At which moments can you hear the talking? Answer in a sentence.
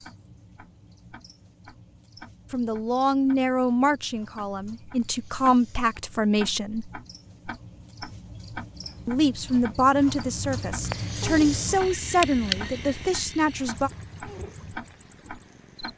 The talking can be heard from 2.5 to 6.9 s and from 9.1 to 13.9 s.